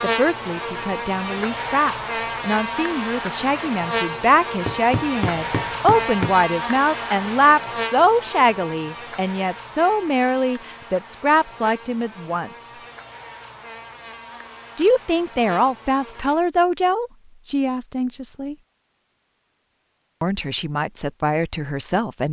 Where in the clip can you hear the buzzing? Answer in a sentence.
The buzzing can be heard from 0.0 to 16.4 s.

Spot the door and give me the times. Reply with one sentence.
The door can't be heard in this clip.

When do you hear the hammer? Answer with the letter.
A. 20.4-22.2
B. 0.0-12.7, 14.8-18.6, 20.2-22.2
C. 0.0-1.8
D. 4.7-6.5
D.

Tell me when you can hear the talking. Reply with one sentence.
You can hear the talking from 0.0 to 12.7 s, from 14.8 to 18.6 s and from 20.2 to 22.2 s.